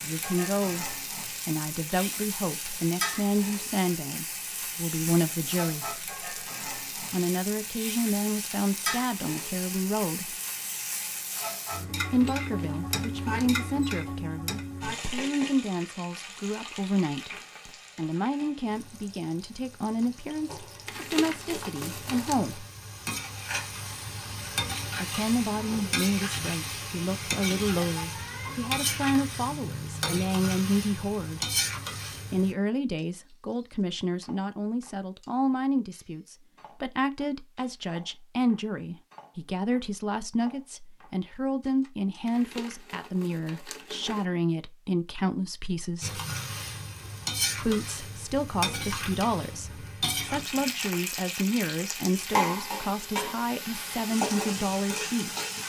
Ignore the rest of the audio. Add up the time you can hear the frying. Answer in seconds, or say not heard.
42 s.